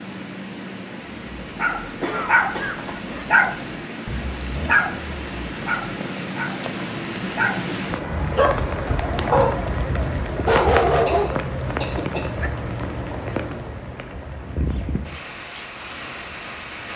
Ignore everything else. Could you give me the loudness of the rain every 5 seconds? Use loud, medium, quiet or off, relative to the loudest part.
medium, loud, loud, medium.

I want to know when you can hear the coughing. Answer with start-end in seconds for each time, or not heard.
2.0-3.0, 11.1-12.3.